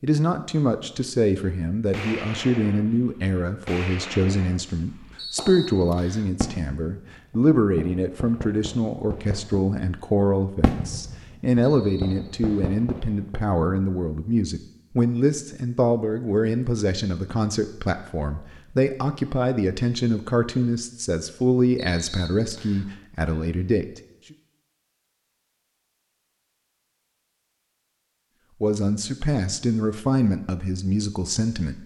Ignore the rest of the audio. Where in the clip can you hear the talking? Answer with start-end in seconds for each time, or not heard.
0.0-23.9, 28.6-31.8.